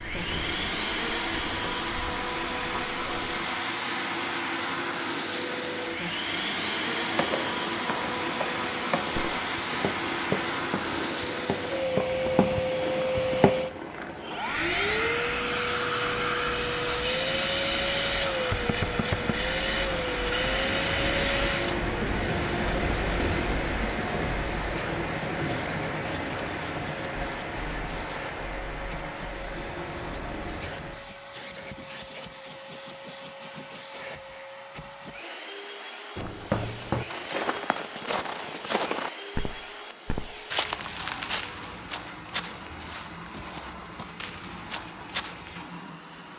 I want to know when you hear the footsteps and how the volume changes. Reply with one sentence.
You can hear the footsteps from 7.0 to 13.6 s, getting louder; and from 36.1 to 45.5 s, getting quieter.